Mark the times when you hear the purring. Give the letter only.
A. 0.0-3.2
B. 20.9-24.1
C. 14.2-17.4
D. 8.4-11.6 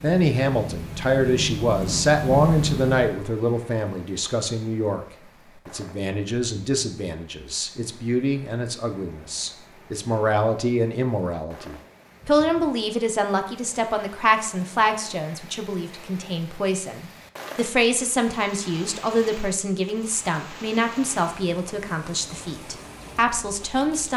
A.